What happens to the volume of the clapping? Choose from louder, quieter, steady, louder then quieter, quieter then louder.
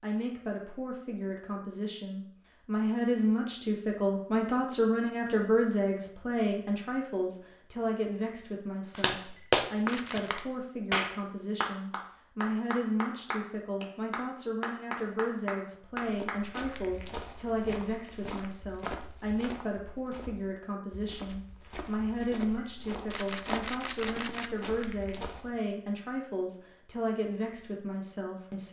quieter.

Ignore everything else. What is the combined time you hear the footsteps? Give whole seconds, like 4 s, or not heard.
10 s.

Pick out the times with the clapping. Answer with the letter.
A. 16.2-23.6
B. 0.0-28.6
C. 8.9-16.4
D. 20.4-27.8
C.